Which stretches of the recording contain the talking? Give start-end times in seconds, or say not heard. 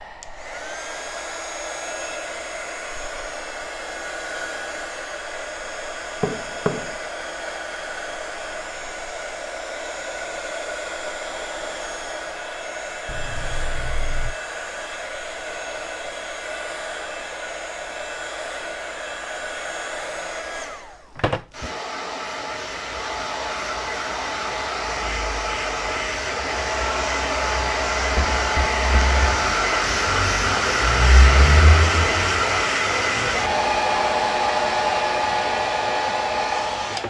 not heard.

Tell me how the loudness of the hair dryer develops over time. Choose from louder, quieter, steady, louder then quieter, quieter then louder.
louder.